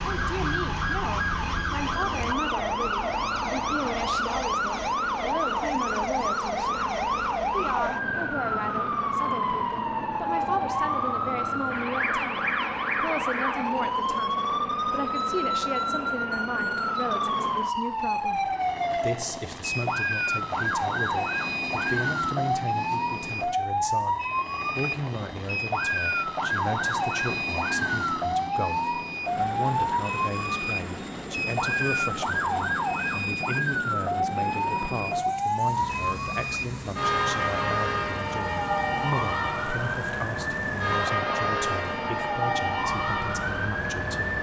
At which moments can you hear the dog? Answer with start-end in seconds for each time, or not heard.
not heard.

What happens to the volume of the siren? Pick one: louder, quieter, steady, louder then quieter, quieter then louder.
steady.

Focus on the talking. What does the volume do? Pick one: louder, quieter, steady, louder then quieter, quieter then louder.
steady.